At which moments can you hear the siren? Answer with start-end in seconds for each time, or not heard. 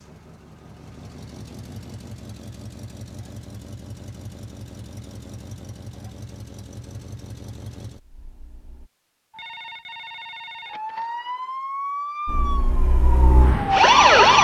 10.7-14.3.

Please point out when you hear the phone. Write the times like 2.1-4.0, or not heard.
9.3-11.1.